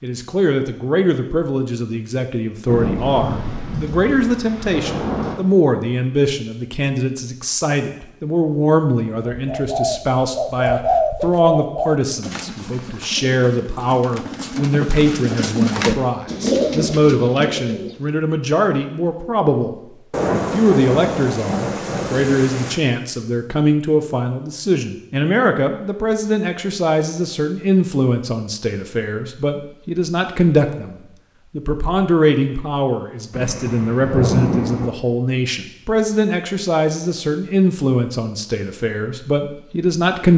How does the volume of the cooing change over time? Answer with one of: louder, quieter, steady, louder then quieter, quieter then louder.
quieter then louder.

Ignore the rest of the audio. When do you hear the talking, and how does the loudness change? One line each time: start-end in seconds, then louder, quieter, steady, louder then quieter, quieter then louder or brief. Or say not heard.
0.0-40.3 steady.